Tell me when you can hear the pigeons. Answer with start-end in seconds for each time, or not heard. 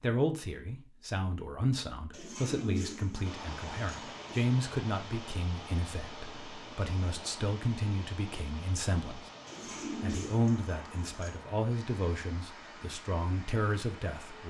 2.1-4.5, 9.4-11.4.